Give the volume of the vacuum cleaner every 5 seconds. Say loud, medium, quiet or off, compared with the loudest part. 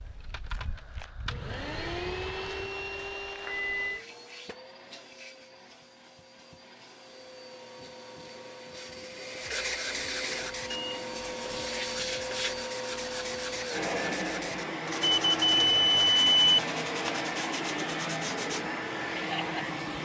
medium, medium, loud, loud.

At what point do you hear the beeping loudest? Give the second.
16 s.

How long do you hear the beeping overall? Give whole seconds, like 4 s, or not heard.
3 s.